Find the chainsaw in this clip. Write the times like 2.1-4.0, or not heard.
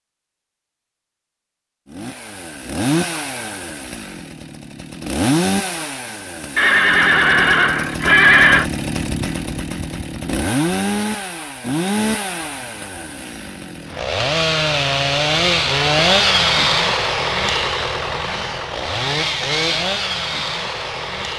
1.9-21.3.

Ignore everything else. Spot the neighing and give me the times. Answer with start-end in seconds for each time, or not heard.
6.5-8.7.